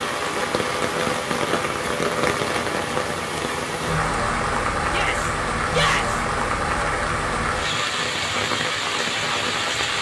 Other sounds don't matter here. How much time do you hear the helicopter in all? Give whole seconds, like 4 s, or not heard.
not heard.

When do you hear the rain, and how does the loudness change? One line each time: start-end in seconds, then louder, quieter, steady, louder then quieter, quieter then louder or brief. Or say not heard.
0.0-9.9 steady.